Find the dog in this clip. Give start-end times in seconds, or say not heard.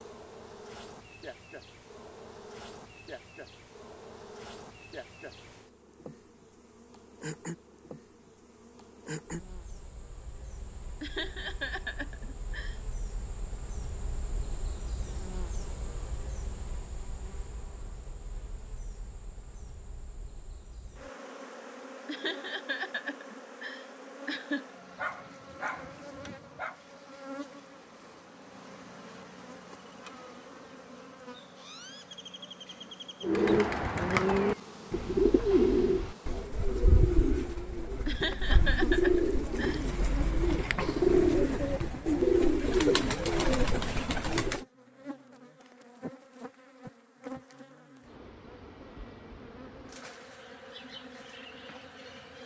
24.9-26.8.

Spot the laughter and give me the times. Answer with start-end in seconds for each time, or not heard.
11.0-12.8, 22.1-24.6, 38.0-39.9.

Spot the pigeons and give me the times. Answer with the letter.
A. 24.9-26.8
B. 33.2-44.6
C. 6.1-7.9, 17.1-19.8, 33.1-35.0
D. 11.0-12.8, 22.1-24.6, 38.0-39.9
B.